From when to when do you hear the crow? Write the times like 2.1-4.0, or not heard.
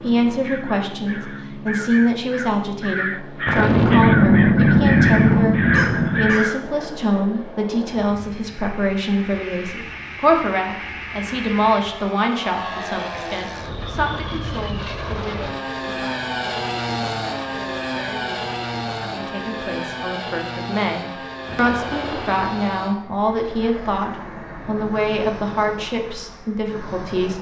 0.4-6.8.